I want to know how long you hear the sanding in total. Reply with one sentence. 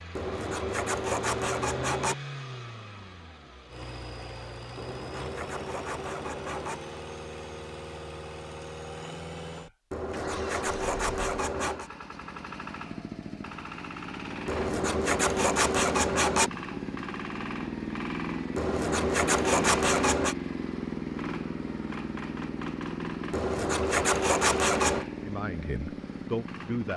You can hear the sanding for 12 seconds altogether.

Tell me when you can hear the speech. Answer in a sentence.
You can hear the speech from 25.2 to 26.9 s.